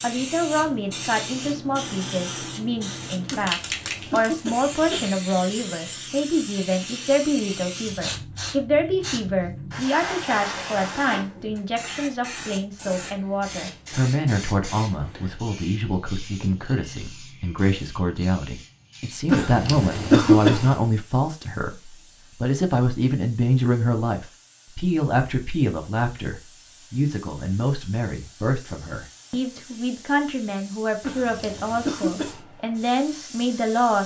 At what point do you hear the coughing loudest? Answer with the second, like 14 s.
20 s.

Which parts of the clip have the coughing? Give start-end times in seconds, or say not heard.
3.3-5.1, 19.2-20.8, 31.0-32.4.